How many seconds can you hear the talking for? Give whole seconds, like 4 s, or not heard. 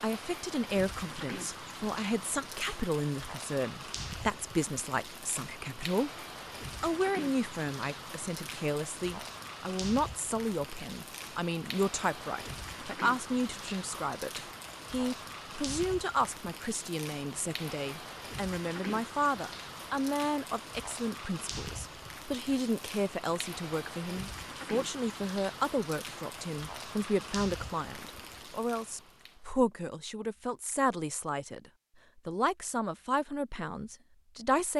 33 s.